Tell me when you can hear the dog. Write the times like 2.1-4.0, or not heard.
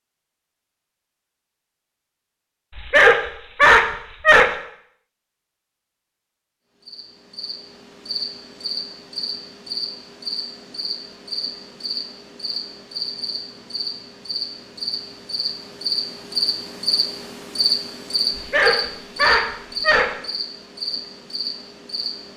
2.8-4.5, 18.4-20.1.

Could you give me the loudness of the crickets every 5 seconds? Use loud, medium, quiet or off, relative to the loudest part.
off, medium, medium, loud, medium.